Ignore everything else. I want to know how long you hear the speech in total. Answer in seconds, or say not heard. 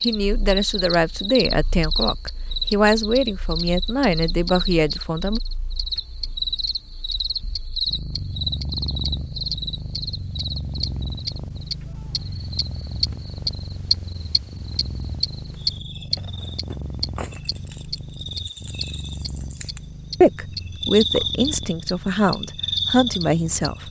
9 s.